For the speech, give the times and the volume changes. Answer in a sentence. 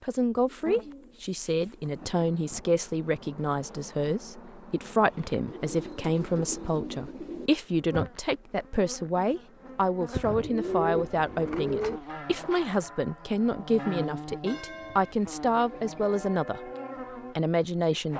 You can hear the speech from 0.0 to 16.6 s, at a steady volume; and briefly from 17.4 to 18.1 s.